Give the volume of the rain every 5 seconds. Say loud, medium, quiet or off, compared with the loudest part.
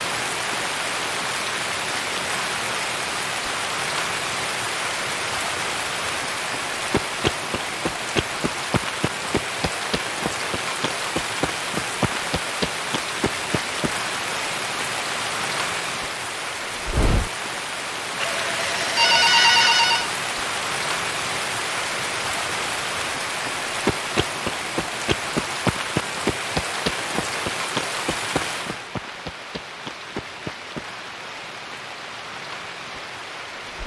loud, loud, loud, loud, loud, loud, medium.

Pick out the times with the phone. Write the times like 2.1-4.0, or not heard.
18.2-20.1.